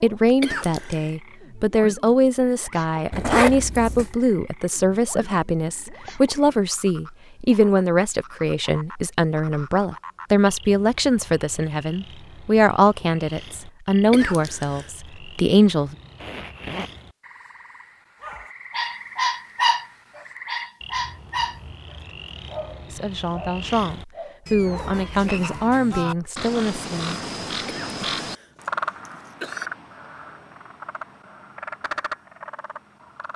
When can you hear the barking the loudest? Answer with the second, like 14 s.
20 s.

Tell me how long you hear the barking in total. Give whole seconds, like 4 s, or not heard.
8 s.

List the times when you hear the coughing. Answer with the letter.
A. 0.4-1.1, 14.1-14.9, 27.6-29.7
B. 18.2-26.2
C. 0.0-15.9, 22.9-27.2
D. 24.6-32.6
A.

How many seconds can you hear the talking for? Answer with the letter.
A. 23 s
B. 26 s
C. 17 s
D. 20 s
D.